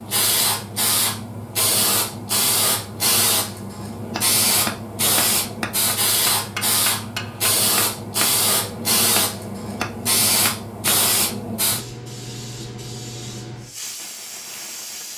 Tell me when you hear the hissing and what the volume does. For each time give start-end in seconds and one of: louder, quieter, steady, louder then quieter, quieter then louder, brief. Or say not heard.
0.0-15.1 quieter.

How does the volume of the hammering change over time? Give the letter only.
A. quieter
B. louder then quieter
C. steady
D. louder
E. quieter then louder
C.